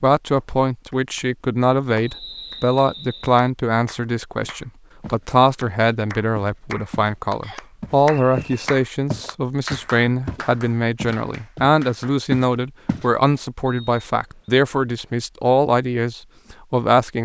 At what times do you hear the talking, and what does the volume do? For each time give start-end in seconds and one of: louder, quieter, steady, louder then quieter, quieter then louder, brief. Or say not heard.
0.0-17.2 steady.